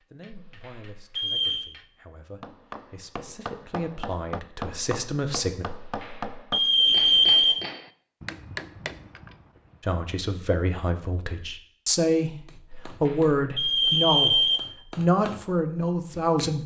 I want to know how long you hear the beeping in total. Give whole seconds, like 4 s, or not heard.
5 s.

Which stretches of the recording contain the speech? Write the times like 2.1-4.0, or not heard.
0.0-5.7, 9.8-16.6.